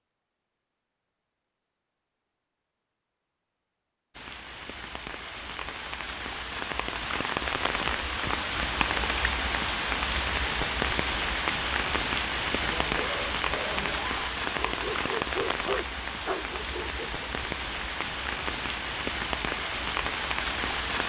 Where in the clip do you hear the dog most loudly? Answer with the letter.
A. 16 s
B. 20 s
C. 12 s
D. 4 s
A.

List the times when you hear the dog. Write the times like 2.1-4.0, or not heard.
12.6-17.2.